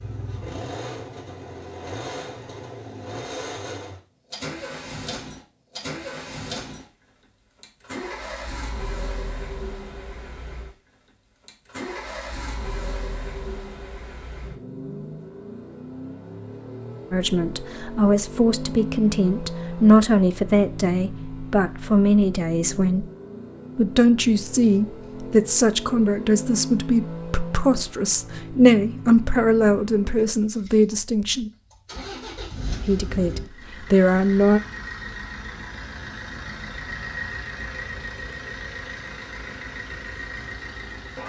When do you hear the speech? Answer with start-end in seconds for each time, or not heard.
17.1-23.1, 23.8-31.5, 32.9-34.6.